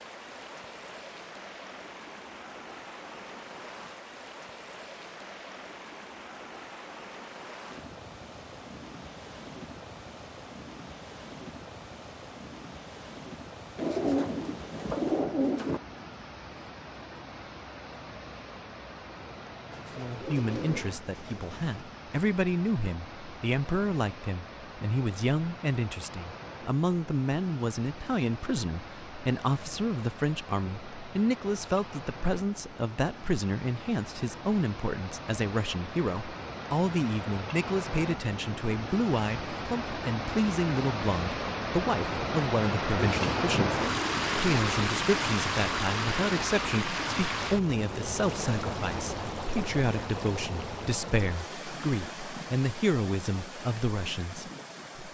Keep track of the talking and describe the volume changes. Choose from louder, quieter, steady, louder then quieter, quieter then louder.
steady.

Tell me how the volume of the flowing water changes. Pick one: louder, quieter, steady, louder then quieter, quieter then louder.
louder.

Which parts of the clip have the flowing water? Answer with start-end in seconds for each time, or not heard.
0.0-55.0.